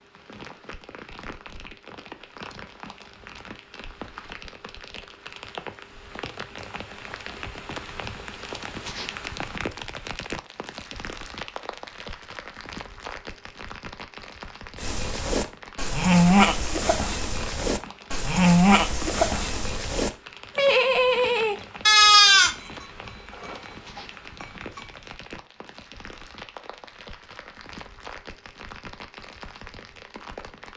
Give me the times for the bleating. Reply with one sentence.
The bleating can be heard from 14.8 to 22.6 s and from 23.4 to 24.0 s.